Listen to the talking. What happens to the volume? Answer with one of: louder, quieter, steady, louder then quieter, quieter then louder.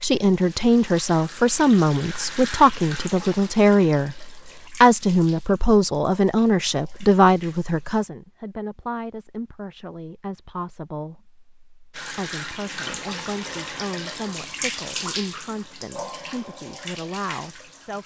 quieter.